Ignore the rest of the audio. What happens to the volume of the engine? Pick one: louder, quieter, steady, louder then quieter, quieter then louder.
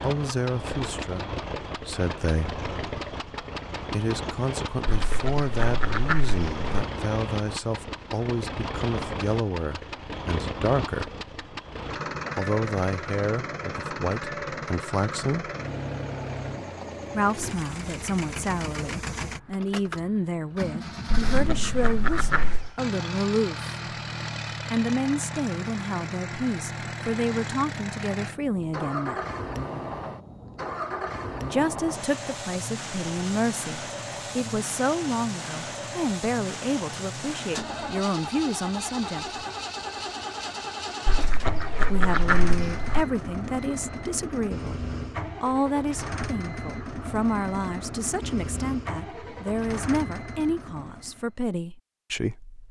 steady.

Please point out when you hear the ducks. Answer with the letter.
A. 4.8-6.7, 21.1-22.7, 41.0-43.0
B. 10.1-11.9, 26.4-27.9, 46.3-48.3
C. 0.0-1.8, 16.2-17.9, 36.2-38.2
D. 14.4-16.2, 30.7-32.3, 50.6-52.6
A.